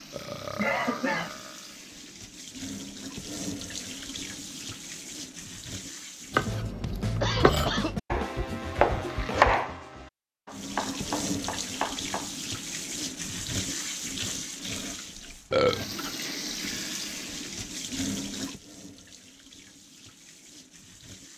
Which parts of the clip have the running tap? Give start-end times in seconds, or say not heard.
0.0-6.7, 10.5-21.3.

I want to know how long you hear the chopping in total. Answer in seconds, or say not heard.
6 s.